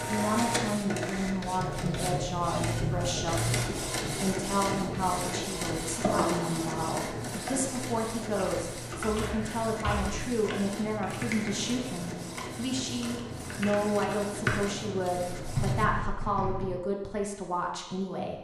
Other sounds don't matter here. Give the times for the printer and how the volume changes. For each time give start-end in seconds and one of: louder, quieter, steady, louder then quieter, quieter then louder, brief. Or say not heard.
0.0-15.8 quieter.